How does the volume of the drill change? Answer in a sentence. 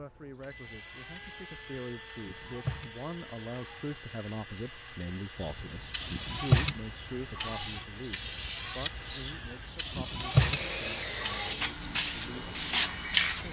The loudness of the drill goes up.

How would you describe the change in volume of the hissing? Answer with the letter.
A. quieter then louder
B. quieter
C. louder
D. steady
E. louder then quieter
A.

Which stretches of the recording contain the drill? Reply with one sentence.
You can hear the drill from 0.0 to 13.4 s.